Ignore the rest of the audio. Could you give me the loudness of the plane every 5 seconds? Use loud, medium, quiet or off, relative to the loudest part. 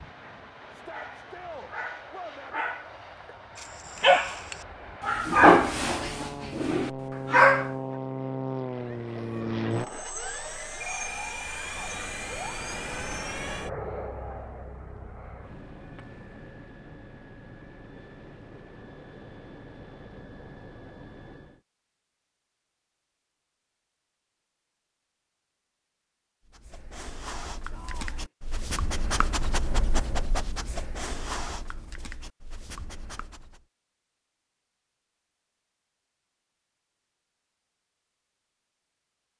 quiet, loud, loud, quiet, quiet, off, off, off.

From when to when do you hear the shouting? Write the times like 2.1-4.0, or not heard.
0.7-2.6, 14.1-14.7, 27.7-28.3.